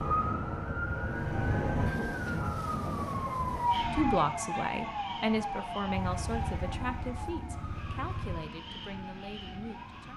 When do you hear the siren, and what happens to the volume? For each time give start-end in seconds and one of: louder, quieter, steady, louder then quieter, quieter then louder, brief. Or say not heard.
0.0-10.1 quieter.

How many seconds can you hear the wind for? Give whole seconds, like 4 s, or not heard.
10 s.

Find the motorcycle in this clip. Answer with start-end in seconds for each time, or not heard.
0.0-1.9, 5.8-8.4.